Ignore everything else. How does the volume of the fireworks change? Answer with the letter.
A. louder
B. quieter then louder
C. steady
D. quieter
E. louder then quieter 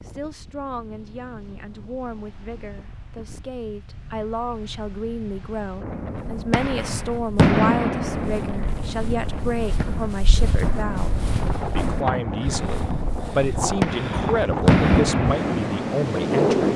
B.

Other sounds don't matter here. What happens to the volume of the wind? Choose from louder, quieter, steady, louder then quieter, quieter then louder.
louder.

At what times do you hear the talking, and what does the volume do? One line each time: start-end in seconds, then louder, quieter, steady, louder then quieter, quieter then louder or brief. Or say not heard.
0.0-16.7 louder.